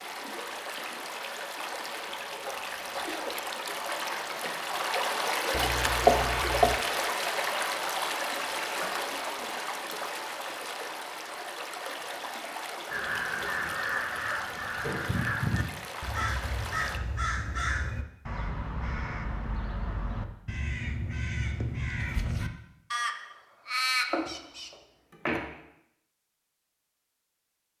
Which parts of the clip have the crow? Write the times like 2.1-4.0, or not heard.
12.9-24.7.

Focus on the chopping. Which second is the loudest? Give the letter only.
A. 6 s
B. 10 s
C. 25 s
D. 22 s
A.